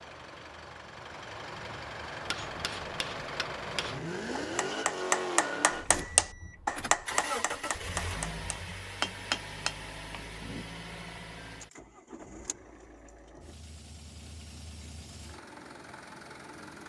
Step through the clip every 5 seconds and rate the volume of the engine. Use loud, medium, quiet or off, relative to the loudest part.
loud, loud, medium, medium.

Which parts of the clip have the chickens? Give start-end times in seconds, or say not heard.
not heard.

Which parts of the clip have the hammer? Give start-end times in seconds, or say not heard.
2.2-10.7.